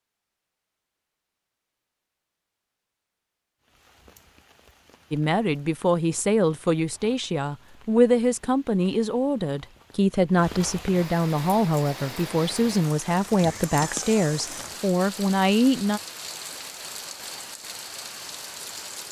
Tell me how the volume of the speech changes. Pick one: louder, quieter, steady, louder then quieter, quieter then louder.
steady.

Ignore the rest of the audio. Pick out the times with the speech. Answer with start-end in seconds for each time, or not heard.
5.1-16.0.